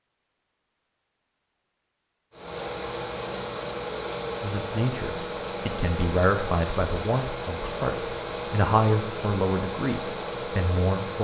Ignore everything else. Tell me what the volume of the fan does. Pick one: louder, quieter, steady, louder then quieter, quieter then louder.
steady.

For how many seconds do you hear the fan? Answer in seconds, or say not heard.
9 s.